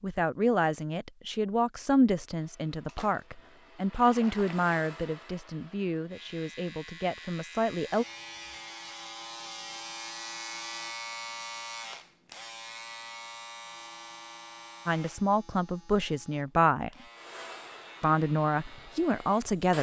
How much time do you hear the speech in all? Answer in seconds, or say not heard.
12 s.